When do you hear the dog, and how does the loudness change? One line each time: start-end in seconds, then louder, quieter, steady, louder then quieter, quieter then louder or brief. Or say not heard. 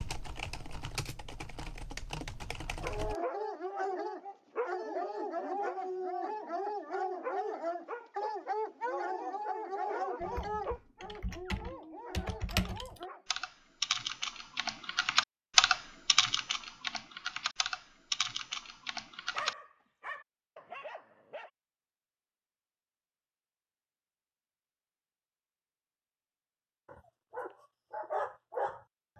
2.8-13.4 quieter
19.3-21.5 brief
26.9-29.1 brief.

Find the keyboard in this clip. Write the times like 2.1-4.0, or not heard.
0.0-3.1, 10.2-19.6.